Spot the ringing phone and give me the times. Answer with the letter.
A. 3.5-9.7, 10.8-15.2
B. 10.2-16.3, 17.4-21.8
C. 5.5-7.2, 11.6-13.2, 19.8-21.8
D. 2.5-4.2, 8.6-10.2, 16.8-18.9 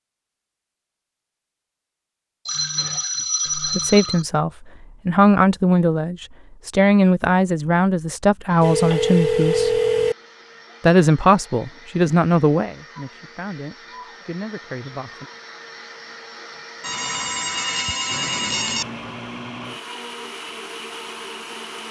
D.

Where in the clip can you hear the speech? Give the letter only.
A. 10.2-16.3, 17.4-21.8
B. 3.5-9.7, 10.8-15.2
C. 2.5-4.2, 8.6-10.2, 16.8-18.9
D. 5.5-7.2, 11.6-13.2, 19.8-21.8
B.